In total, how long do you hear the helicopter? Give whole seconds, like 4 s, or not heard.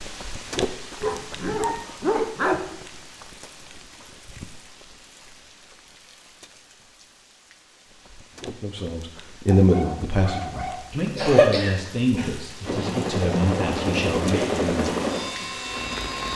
4 s.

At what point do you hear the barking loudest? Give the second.
2 s.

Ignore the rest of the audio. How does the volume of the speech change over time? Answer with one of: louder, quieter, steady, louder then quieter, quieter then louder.
quieter.